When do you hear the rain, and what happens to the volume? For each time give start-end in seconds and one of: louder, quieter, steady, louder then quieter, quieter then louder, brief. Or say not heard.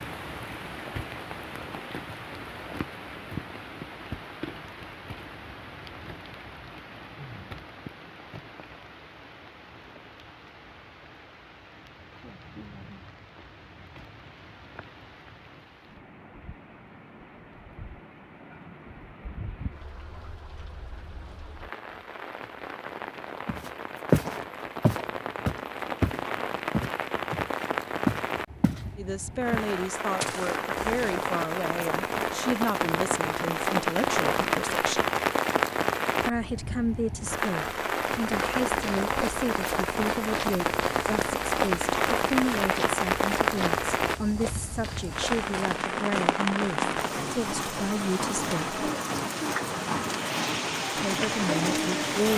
0.0-52.3 quieter then louder.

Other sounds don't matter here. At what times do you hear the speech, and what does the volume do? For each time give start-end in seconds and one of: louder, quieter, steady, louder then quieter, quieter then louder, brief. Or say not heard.
28.9-35.0 steady
36.2-48.8 steady
51.0-52.3 brief.